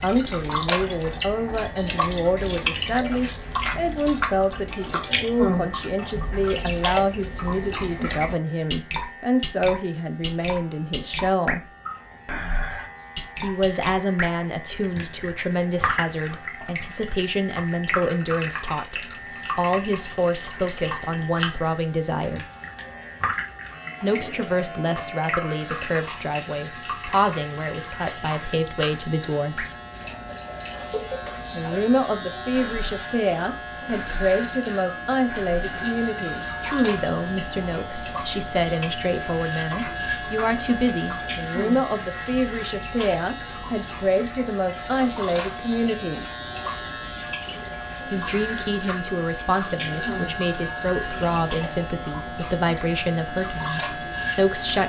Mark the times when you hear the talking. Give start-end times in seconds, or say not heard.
0.0-11.7, 13.3-22.4, 24.0-29.6, 31.5-46.4, 48.0-54.8.